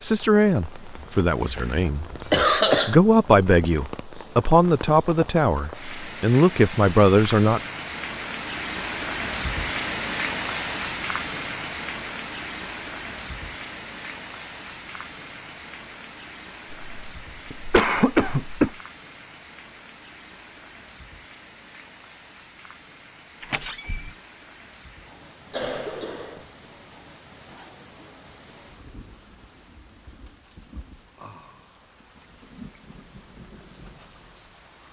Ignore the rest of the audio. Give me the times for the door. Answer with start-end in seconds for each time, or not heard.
23.4-24.1.